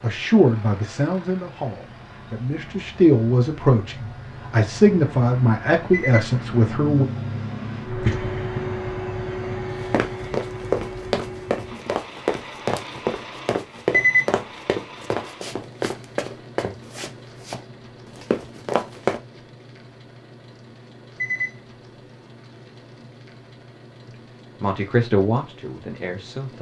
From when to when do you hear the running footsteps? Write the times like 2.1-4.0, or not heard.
9.8-19.2.